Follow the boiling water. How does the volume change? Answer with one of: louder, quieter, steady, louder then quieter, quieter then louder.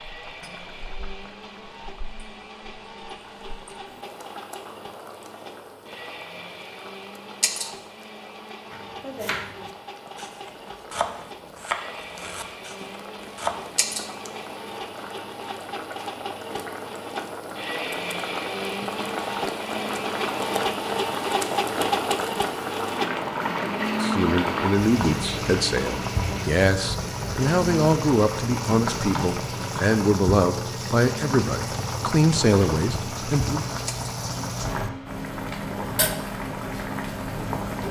louder.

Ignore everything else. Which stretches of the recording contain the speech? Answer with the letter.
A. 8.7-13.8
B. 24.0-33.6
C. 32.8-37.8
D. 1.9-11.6
B.